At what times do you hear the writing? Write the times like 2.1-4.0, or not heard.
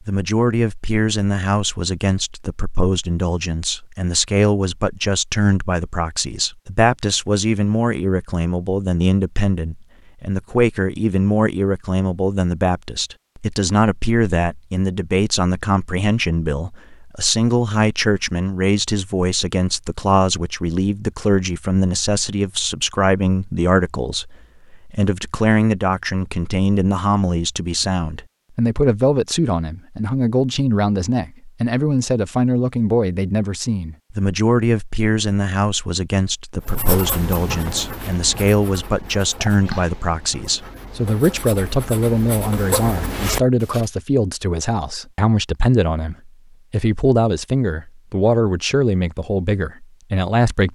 36.6-43.9.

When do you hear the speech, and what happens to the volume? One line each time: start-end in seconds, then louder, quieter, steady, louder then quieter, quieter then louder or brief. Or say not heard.
0.1-50.7 steady.